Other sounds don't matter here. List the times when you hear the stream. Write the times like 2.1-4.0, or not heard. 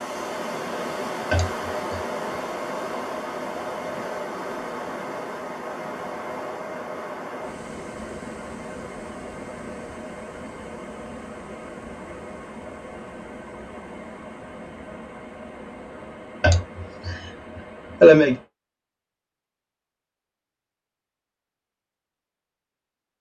0.0-18.5.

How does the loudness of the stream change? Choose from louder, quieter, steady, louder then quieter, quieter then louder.
quieter.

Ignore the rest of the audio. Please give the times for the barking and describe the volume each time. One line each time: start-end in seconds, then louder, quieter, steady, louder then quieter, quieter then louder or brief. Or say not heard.
not heard.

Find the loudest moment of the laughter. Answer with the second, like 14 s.
18 s.